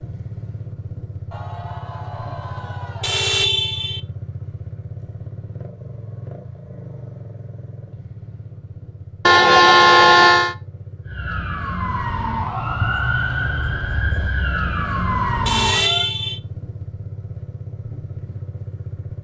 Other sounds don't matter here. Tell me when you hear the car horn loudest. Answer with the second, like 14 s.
10 s.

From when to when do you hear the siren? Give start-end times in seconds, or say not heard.
11.1-16.1.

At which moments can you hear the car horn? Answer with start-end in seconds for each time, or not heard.
3.0-4.0, 9.2-10.6, 15.4-16.4.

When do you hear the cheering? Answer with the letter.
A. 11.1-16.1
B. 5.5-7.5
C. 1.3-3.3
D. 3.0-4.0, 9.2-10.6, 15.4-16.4
C.